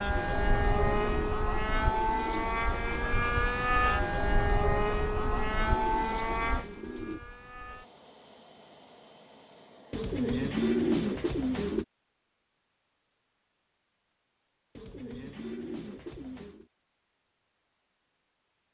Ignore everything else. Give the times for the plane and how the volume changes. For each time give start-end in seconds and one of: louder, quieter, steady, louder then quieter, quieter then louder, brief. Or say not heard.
0.0-11.1 quieter.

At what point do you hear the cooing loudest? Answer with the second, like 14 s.
11 s.